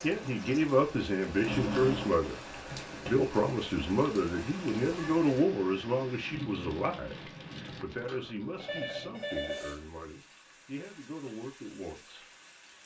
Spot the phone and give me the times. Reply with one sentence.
The phone can be heard from 1.4 to 2.1 s and from 8.1 to 9.8 s.